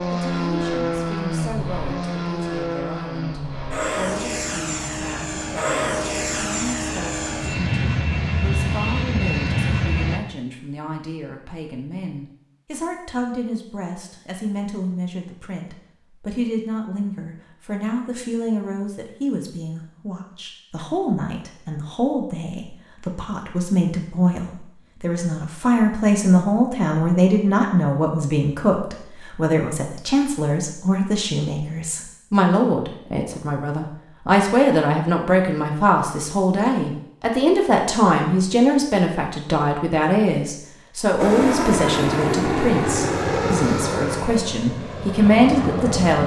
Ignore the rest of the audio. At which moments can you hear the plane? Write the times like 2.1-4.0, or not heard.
0.0-10.2, 41.1-46.2.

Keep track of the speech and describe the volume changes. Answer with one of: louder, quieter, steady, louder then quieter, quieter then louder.
louder.